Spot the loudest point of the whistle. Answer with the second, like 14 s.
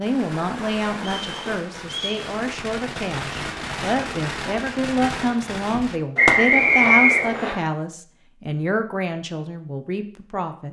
7 s.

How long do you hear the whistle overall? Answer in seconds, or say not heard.
3 s.